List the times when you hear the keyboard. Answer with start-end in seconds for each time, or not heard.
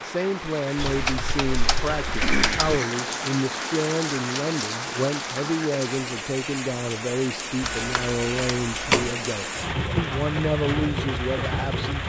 0.8-2.8, 7.6-9.2.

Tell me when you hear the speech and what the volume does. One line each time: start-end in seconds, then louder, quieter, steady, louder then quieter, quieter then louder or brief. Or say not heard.
0.0-12.0 steady.